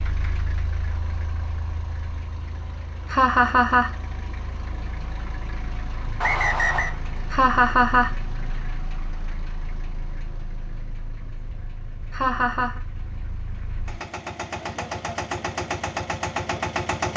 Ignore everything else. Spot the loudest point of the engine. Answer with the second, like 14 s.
17 s.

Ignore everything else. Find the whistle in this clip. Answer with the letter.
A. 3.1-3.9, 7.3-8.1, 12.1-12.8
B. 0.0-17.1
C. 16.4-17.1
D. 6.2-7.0
D.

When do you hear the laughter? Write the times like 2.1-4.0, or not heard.
3.1-3.9, 7.3-8.1, 12.1-12.8.